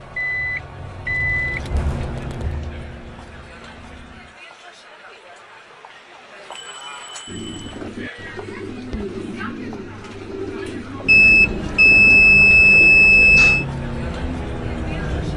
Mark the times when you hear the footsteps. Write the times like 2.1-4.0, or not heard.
not heard.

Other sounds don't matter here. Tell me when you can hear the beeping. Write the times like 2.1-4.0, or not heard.
0.1-1.8, 6.5-7.8, 11.1-13.7.